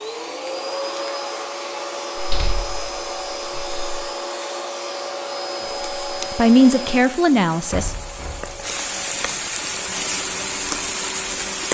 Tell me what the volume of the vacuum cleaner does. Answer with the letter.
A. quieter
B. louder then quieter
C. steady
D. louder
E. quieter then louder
A.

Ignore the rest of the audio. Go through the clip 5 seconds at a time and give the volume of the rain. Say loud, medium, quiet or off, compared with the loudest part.
off, medium, loud.